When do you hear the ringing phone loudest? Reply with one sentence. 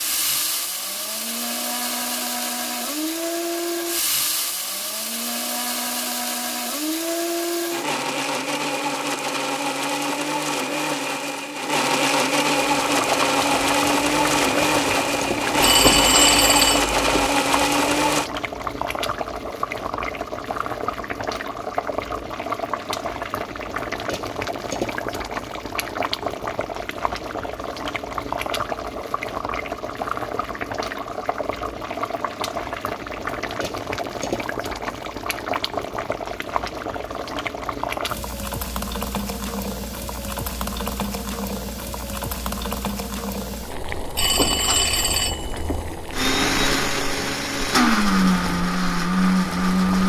The volume of the ringing phone peaks at 16 seconds.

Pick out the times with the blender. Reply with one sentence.
You can hear the blender from 0.0 to 18.3 s and from 46.1 to 50.0 s.